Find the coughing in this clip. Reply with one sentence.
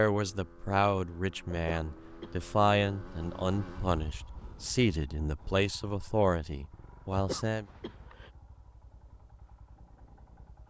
The coughing can be heard from 1.5 to 2.4 s and from 7.1 to 8.3 s.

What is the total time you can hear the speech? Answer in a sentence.
The speech can be heard for 8 seconds in total.